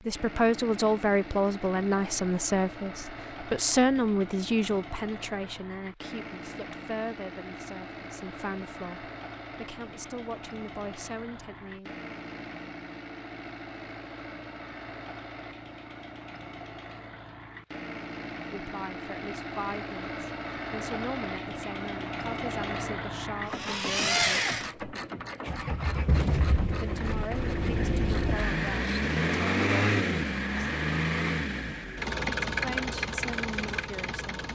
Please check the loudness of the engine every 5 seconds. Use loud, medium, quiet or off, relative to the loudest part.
quiet, quiet, quiet, medium, loud, loud, loud.